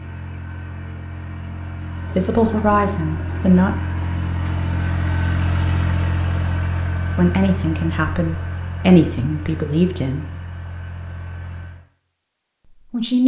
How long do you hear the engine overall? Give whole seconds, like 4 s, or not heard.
12 s.